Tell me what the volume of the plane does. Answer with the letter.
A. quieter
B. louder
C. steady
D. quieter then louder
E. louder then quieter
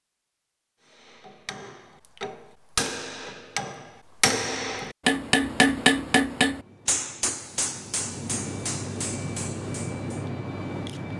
B.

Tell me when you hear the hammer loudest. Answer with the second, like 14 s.
6 s.